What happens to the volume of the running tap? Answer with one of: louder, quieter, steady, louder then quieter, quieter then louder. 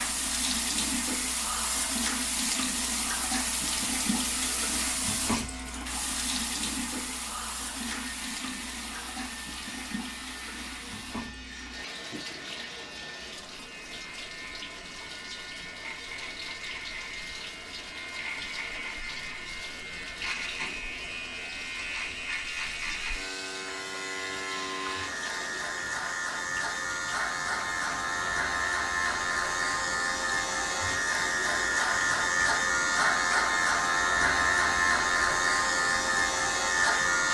quieter.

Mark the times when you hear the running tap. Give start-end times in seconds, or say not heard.
0.0-37.2.